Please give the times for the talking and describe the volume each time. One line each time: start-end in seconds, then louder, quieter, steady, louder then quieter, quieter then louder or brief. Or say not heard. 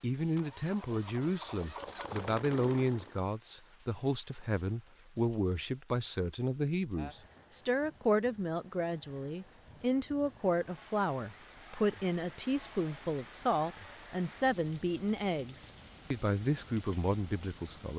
0.0-17.9 steady.